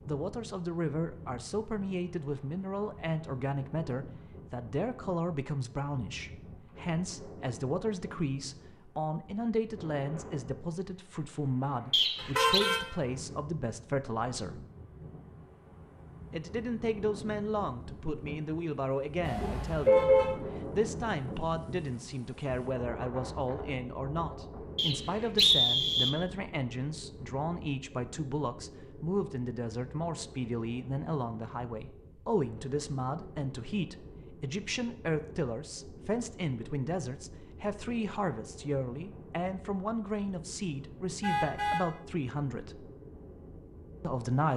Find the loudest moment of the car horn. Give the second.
20 s.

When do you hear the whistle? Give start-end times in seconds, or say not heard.
11.9-12.7, 24.8-26.1.